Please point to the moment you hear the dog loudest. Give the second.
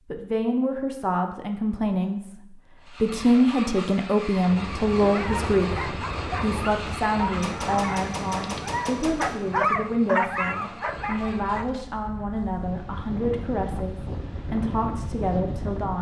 10 s.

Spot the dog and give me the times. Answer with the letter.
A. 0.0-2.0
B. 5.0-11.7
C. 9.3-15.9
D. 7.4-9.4
B.